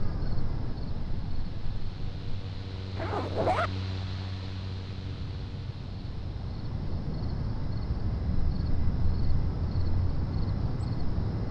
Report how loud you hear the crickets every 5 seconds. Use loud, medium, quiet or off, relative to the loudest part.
medium, loud, loud.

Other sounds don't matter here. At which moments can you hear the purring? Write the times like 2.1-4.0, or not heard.
not heard.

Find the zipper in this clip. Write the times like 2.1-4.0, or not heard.
3.0-3.7.